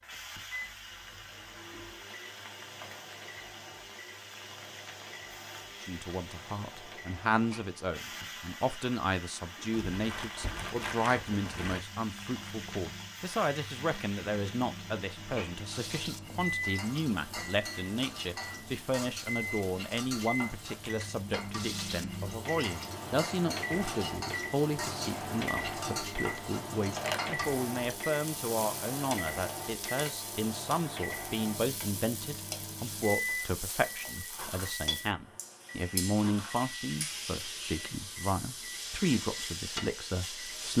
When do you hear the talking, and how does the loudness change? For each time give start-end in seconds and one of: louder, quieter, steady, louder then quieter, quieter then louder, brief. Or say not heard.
5.8-40.7 steady.